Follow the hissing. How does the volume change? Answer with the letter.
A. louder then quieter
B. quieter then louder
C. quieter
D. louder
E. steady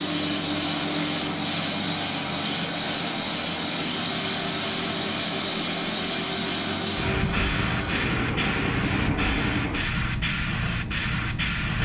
E.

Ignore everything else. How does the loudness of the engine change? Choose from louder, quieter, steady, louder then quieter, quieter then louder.
steady.